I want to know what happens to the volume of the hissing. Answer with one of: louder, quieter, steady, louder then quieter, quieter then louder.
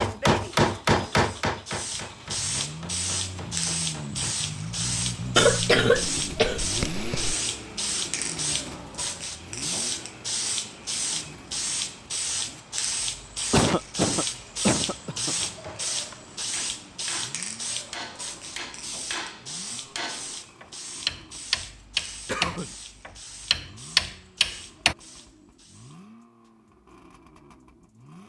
quieter.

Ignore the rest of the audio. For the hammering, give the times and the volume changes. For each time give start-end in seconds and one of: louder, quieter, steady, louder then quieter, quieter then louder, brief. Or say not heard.
0.0-4.3 quieter
15.4-24.9 louder.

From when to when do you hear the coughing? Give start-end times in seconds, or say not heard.
5.3-7.3, 13.5-15.3, 22.2-22.8.